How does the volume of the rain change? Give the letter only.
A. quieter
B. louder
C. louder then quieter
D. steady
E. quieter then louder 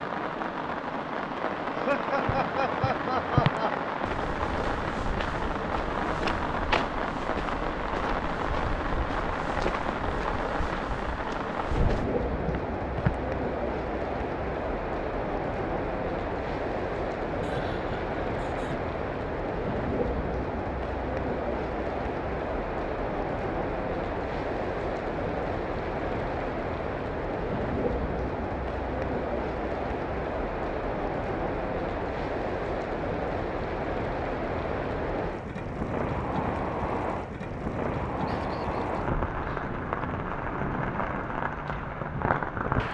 D.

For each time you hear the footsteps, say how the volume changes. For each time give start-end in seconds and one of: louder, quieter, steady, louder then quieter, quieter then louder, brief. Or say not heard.
2.2-13.2 quieter.